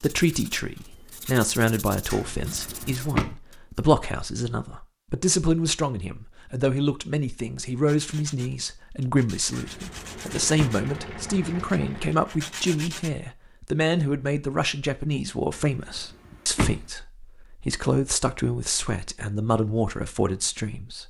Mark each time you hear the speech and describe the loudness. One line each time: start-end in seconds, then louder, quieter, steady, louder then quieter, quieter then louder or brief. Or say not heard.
0.0-21.0 steady.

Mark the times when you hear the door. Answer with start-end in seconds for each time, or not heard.
2.1-3.2, 9.5-10.7, 15.5-16.9.